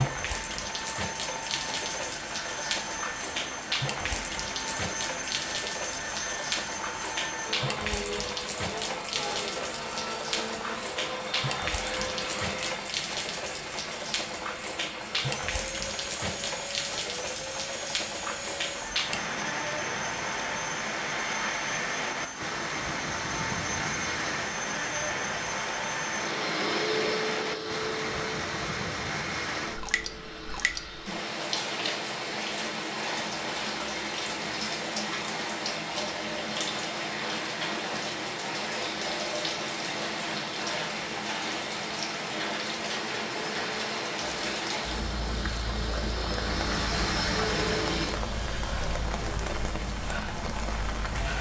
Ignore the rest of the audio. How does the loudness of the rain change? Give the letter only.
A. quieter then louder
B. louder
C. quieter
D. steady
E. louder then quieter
D.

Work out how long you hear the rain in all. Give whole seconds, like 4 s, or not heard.
51 s.